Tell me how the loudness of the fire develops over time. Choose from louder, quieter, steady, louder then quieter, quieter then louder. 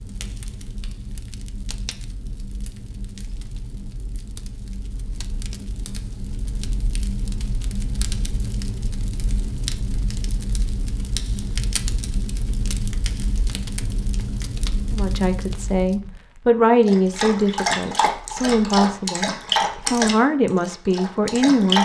louder.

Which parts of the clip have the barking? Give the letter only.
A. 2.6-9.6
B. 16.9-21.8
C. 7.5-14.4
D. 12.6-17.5
B.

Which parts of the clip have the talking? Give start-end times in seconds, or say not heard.
14.9-21.8.